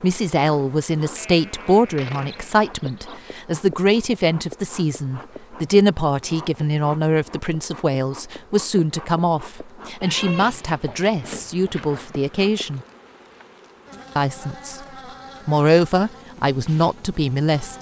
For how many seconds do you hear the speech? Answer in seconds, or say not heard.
16 s.